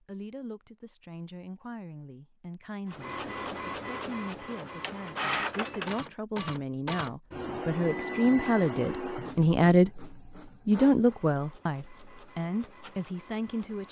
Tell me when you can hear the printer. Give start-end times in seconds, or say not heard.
2.9-13.8.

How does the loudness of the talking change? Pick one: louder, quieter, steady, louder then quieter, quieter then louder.
louder then quieter.